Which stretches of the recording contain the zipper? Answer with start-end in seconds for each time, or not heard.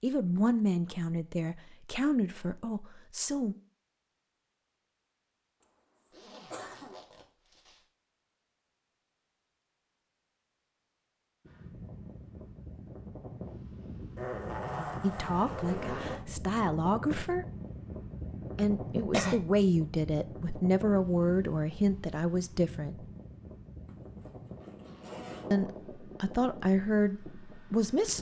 6.1-7.8, 14.2-16.2, 23.9-25.6.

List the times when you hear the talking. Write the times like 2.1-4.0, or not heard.
0.0-3.5, 15.0-17.4, 18.6-23.0, 25.5-28.1.